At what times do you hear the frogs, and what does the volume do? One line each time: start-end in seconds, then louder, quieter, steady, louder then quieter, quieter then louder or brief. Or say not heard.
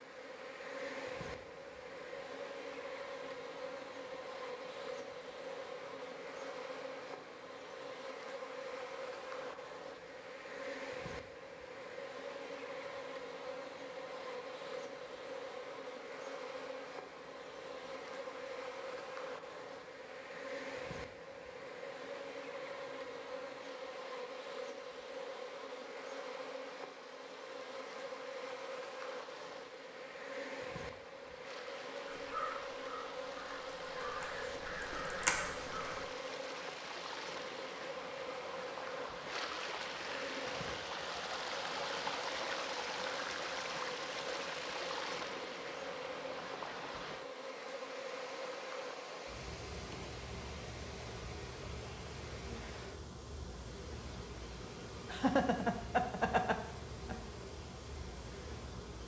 not heard.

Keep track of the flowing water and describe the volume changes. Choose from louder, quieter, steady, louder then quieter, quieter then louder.
louder then quieter.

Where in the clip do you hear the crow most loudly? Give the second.
35 s.